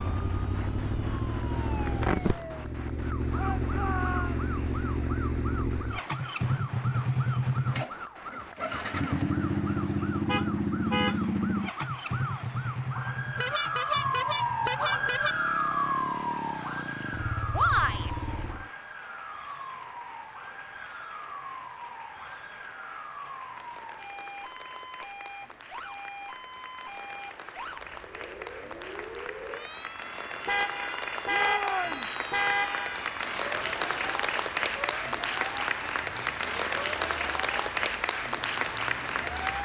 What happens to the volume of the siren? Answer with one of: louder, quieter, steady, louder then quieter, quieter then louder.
louder then quieter.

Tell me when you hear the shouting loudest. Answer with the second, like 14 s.
18 s.